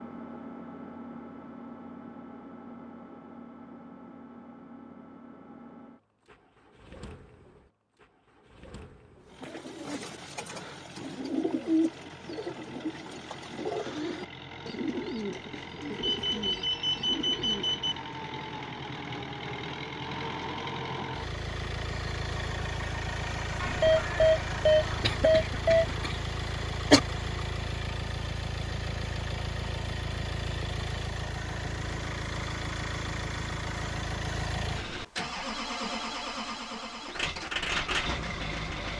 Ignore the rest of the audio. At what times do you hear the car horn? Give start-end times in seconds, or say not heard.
not heard.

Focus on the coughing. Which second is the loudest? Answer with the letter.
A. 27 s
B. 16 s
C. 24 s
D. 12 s
A.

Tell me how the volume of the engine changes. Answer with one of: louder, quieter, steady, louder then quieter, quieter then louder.
louder.